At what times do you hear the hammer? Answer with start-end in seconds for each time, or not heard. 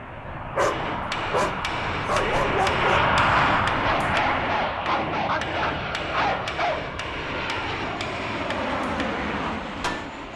0.6-10.1.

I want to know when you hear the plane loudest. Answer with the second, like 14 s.
3 s.